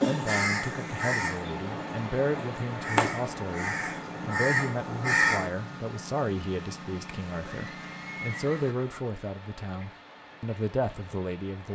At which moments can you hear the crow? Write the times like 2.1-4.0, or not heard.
0.0-5.5.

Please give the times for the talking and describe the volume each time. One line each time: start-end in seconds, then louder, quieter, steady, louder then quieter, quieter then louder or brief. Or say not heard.
0.0-11.7 steady.